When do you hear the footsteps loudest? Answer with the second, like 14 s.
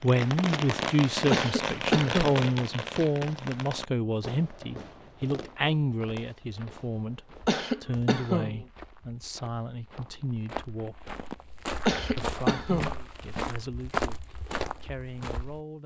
14 s.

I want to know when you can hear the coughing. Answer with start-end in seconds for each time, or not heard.
1.3-2.5, 7.5-8.6, 11.8-13.0.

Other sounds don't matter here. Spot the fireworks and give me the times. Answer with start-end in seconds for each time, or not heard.
0.0-8.2.